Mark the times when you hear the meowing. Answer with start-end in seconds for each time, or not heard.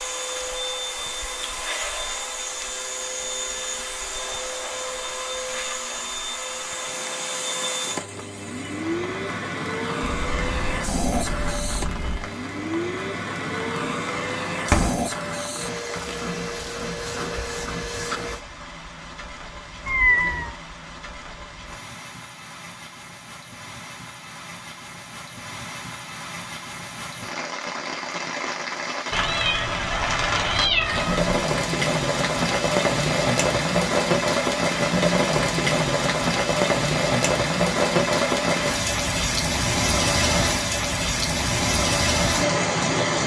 10.2-12.3, 19.9-20.6, 29.1-31.4.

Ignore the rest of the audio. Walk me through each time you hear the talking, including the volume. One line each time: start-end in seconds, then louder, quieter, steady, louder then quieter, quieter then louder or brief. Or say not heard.
not heard.